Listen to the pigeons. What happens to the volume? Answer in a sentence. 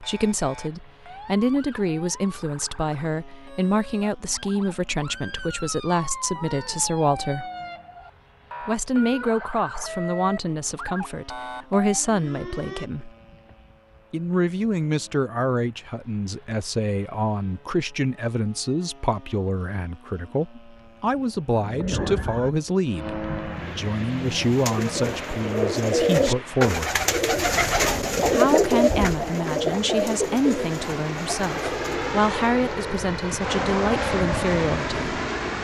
The volume of the pigeons goes up, then down.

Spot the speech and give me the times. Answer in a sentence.
You can hear the speech from 0.0 to 7.5 s, from 8.7 to 13.1 s, from 14.1 to 27.0 s and from 28.2 to 35.1 s.